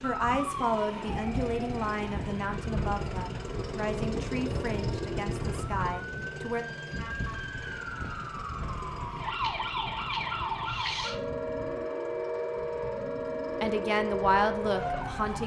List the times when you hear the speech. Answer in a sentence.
The speech can be heard from 0.0 to 6.7 s and from 13.6 to 15.4 s.